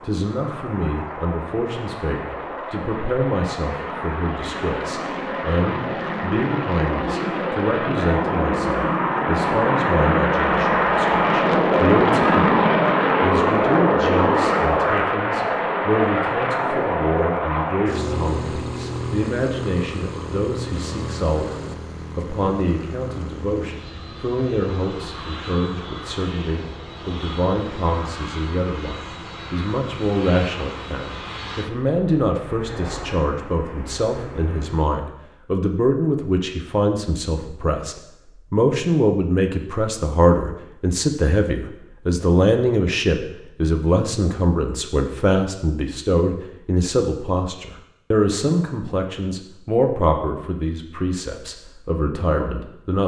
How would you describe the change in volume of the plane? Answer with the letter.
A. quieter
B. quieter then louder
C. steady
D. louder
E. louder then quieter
E.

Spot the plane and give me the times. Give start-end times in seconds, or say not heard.
0.0-34.9.